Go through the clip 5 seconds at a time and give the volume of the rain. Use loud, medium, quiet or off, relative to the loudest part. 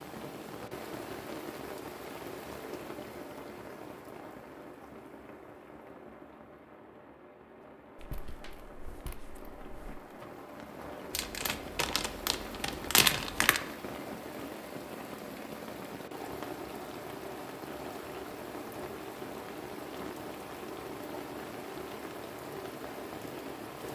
loud, medium, loud, loud, loud.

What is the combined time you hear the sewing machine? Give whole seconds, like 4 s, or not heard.
not heard.